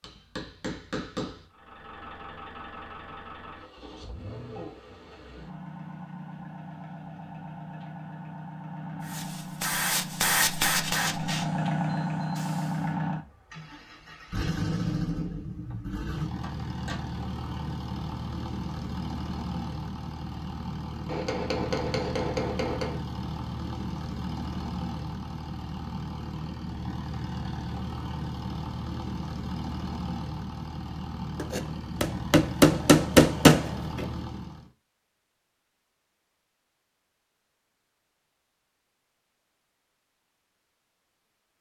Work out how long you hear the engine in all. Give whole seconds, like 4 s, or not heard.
33 s.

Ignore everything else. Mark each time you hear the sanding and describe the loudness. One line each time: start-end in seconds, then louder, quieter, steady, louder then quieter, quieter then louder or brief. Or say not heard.
not heard.